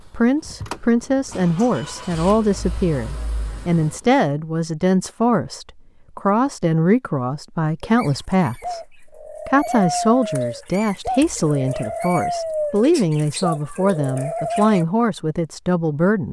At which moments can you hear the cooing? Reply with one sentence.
The cooing can be heard from 7.8 to 14.8 s.